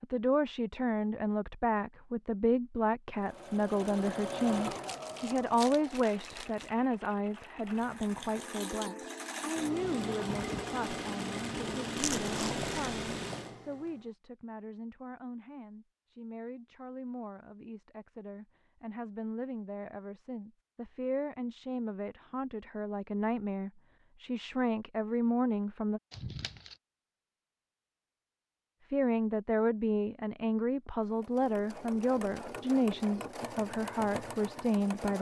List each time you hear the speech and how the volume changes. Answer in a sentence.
You can hear the speech from 0.0 to 26.0 s, getting quieter then louder; and from 28.9 to 35.1 s, at a steady volume.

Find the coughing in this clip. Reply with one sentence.
The coughing can't be heard in this clip.